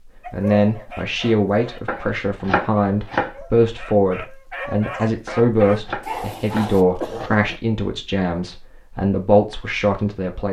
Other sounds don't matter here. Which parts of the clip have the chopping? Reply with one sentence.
You can hear the chopping from 1.9 to 3.4 s and from 5.2 to 7.3 s.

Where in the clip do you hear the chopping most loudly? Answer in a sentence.
The loudest moment of the chopping is at 3 seconds.